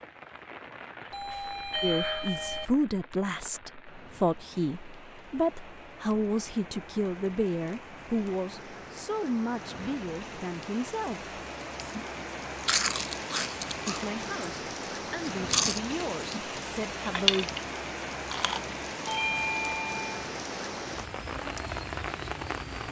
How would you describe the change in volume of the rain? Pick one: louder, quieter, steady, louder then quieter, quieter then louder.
louder.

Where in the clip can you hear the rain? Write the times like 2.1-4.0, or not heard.
0.0-22.8.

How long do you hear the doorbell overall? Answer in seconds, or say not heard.
3 s.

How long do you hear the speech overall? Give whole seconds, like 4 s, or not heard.
13 s.